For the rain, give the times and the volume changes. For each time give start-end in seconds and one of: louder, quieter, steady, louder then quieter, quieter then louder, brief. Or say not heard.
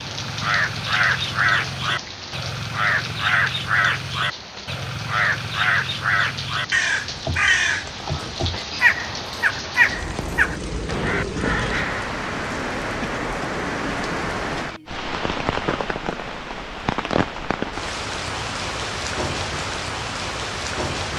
0.0-21.1 louder.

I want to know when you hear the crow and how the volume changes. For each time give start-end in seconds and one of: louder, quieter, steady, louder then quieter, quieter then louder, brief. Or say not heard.
0.0-12.1 steady.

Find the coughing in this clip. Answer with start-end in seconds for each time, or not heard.
13.0-13.5.